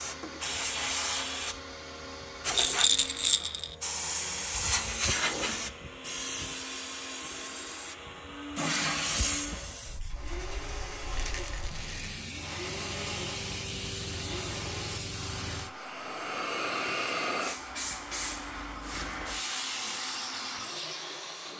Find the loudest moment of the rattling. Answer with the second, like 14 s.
3 s.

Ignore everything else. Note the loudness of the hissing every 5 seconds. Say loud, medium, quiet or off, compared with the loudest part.
loud, loud, medium, loud, medium.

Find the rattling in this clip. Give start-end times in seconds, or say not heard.
2.5-3.8, 11.2-12.2.